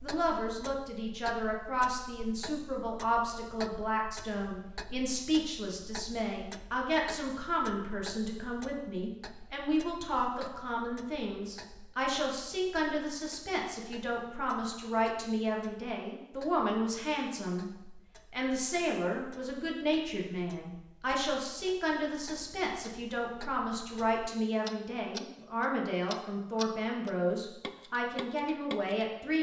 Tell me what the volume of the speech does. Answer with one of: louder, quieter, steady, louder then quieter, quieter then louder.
steady.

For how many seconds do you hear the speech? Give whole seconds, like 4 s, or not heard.
29 s.